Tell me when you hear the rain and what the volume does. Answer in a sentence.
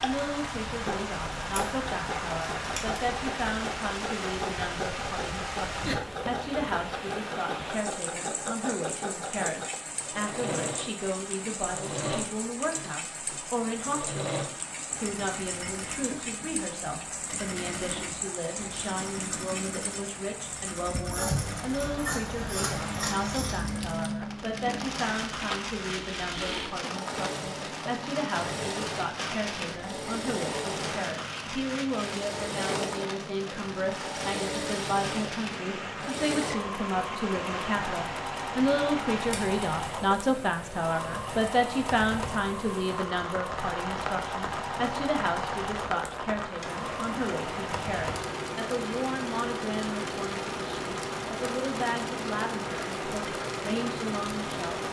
The rain can be heard from 0.0 to 54.8 s, at a steady volume.